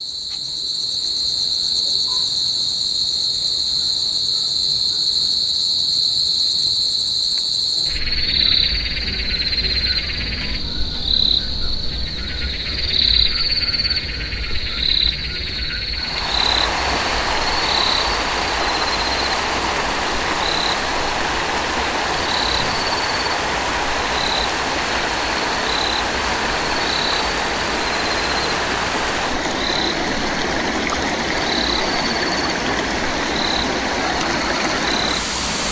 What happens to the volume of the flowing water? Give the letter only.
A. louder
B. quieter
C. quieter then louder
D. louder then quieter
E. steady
E.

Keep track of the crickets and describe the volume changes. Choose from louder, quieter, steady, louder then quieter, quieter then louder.
quieter.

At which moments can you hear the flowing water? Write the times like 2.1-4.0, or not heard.
15.9-35.6.